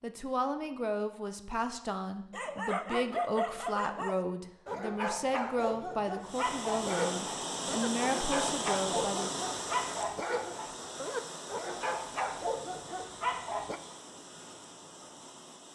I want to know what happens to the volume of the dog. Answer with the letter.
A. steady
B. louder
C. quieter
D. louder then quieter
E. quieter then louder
A.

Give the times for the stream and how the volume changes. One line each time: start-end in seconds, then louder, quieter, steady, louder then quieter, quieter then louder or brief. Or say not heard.
6.2-15.7 quieter.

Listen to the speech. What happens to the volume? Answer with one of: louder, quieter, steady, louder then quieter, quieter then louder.
steady.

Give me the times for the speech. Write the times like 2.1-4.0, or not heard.
0.0-9.4.